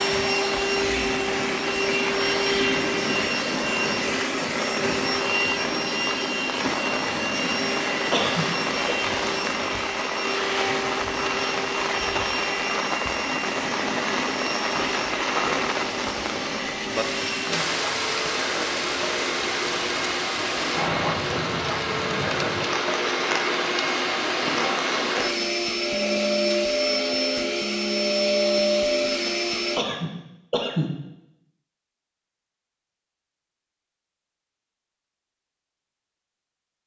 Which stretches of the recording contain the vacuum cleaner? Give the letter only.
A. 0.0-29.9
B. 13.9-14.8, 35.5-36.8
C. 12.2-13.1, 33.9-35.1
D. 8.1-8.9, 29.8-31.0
A.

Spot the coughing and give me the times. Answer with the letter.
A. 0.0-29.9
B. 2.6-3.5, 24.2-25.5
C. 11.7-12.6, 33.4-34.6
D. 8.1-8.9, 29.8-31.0
D.